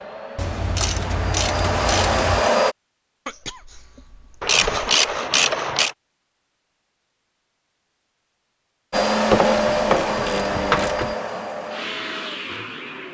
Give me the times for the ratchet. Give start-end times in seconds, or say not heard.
0.3-2.5, 4.4-6.0, 9.3-11.2.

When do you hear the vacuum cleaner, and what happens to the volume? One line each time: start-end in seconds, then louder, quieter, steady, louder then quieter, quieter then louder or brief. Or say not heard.
0.0-2.8 brief
8.9-13.0 quieter.